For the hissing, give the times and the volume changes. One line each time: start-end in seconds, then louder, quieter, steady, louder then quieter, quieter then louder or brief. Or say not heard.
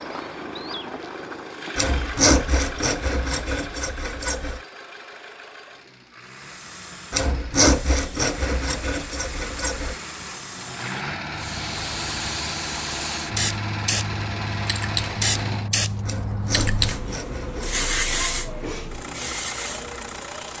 6.2-20.5 louder.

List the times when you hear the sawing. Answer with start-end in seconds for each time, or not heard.
1.8-4.6, 7.1-9.9, 16.1-17.9.